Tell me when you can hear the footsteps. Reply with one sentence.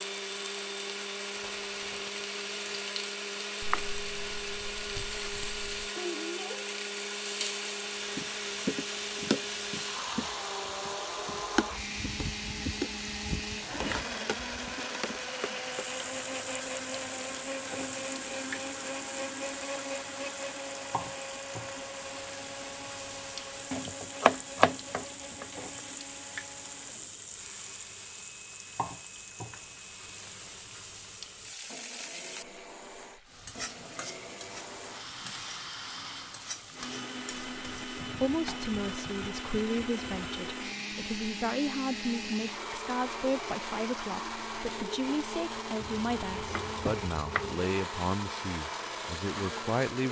You can't hear the footsteps here.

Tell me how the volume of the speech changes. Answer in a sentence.
The volume of the speech stays about the same.